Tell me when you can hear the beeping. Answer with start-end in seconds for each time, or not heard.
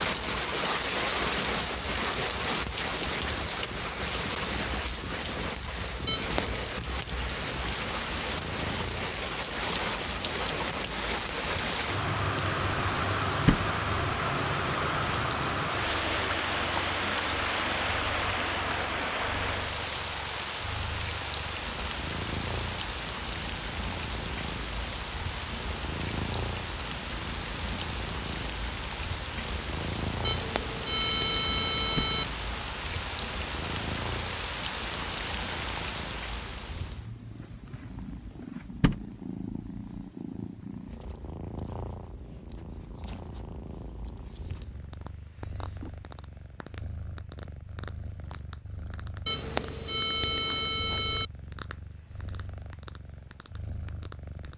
6.0-6.7, 30.2-32.2, 49.2-51.3.